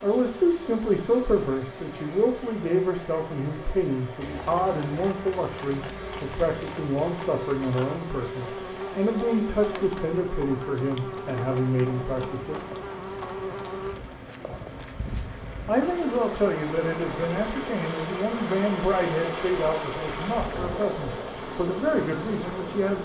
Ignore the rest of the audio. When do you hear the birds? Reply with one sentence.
You can't hear the birds here.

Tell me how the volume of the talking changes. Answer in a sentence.
The loudness of the talking stays about the same.